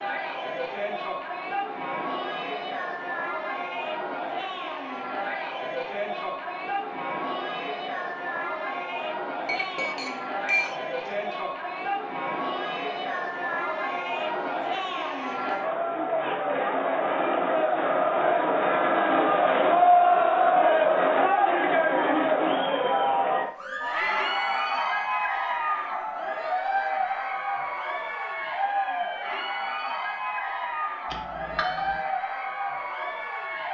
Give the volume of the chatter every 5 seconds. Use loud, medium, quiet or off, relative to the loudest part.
medium, medium, medium, loud, loud, medium, medium.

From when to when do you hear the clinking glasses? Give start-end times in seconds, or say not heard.
9.4-11.3, 31.1-31.9.